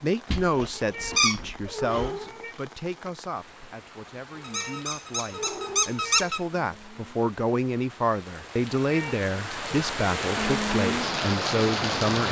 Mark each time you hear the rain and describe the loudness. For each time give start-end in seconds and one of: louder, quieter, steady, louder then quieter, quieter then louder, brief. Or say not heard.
0.0-12.2 louder.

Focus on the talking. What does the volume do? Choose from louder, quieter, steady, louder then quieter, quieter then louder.
quieter then louder.